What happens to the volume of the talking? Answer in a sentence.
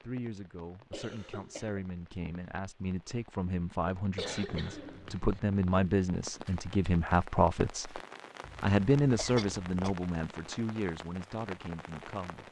The volume of the talking goes up, then down.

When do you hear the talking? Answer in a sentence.
The talking can be heard from 0.0 to 8.0 s and from 8.6 to 12.4 s.